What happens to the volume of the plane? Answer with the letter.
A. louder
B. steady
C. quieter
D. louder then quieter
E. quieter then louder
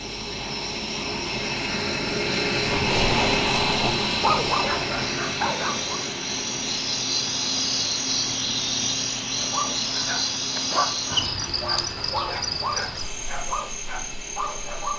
C.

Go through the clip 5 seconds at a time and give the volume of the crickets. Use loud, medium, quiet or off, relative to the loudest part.
medium, loud, loud.